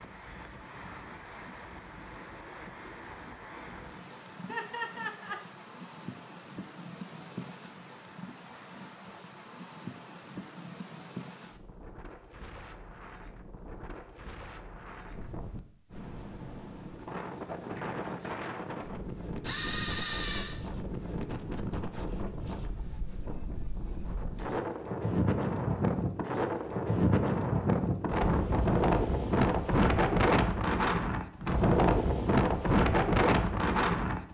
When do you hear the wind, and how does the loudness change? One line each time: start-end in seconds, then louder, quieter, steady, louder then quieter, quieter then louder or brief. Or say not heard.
0.0-34.2 louder.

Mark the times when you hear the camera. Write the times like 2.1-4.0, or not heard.
19.4-20.6.